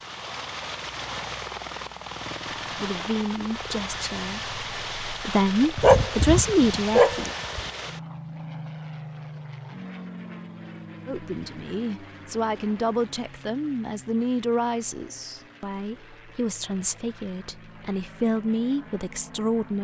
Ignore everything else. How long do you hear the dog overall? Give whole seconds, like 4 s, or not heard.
2 s.